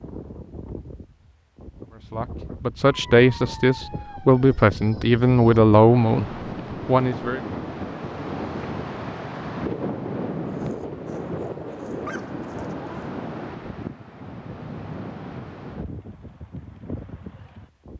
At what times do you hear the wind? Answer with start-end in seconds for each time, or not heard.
0.0-17.9.